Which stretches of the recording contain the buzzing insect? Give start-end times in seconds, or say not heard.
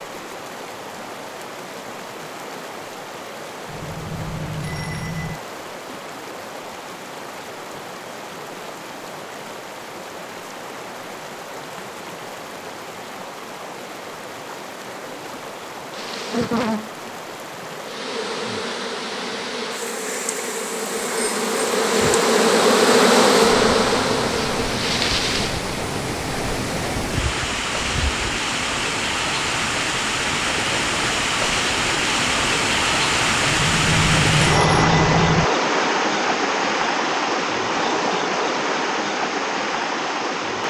15.9-28.2.